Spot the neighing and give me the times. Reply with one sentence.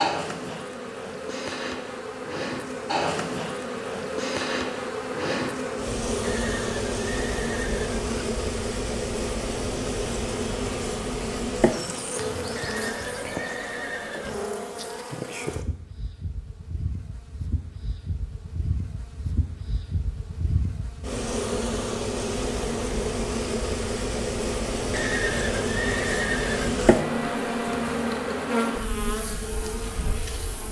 You can hear the neighing from 6.2 to 8.1 s, from 12.6 to 14.5 s and from 24.9 to 26.9 s.